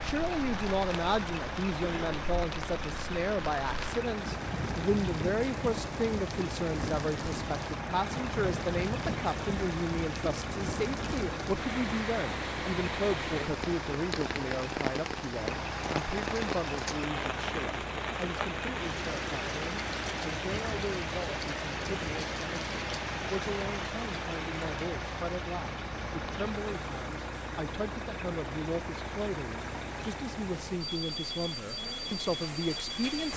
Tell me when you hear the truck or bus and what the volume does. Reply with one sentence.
The truck or bus can be heard from 0.0 to 33.3 s, at a steady volume.